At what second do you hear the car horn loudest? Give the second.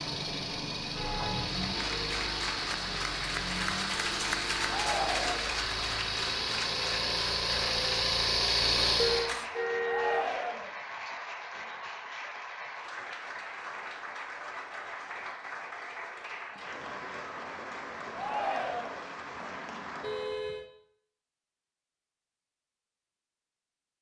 9 s.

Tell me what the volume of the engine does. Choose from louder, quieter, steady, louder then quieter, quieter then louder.
louder.